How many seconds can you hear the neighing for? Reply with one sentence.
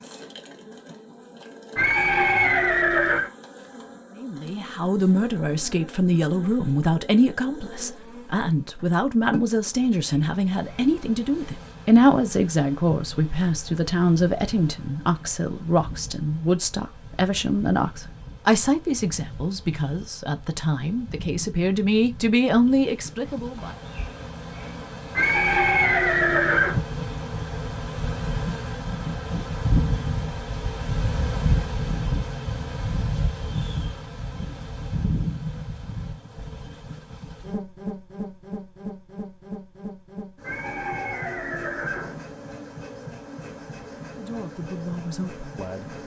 The neighing can be heard for 5 seconds in total.